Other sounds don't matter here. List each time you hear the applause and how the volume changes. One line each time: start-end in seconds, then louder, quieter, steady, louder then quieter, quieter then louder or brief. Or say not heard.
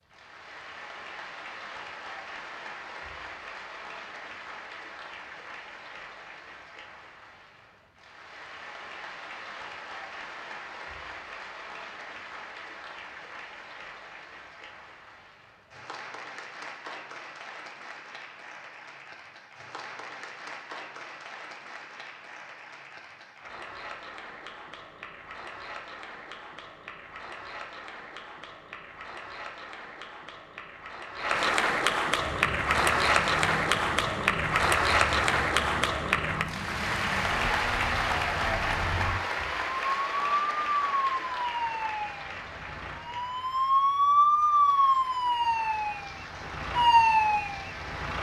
0.0-48.1 louder then quieter.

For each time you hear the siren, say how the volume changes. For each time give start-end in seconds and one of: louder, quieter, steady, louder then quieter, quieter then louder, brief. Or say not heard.
32.2-48.1 louder.